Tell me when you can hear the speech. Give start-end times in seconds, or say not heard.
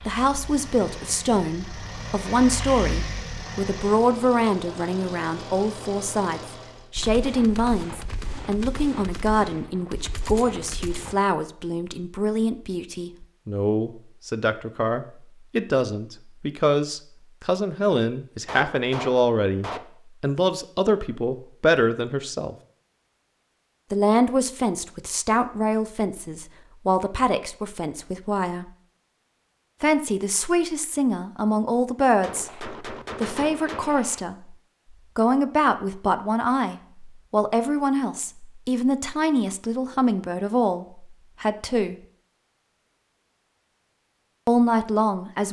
0.1-22.6, 23.9-28.7, 29.8-34.5, 35.1-42.0, 44.5-45.4.